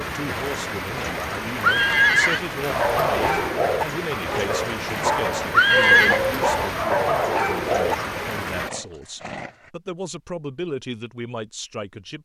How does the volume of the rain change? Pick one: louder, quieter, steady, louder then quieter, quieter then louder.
steady.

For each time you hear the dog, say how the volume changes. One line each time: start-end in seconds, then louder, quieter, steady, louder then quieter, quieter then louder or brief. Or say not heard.
2.6-8.3 quieter then louder.